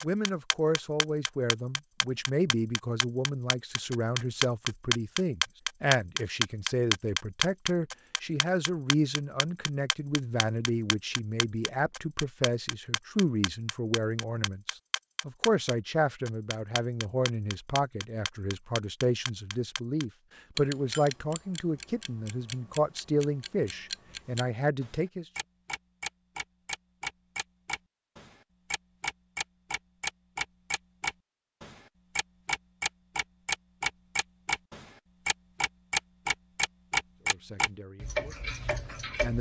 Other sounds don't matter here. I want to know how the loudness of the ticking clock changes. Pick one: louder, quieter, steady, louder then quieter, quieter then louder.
quieter then louder.